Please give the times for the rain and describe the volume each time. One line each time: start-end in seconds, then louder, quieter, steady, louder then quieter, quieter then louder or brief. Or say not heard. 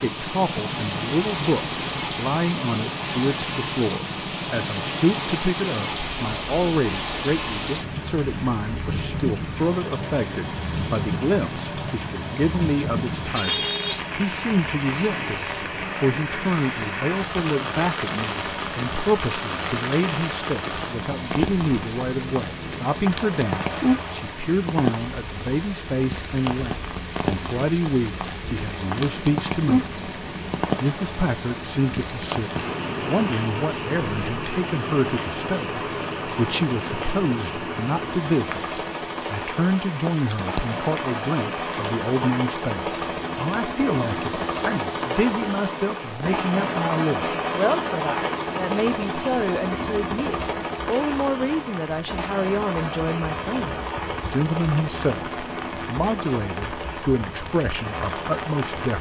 0.0-58.9 quieter.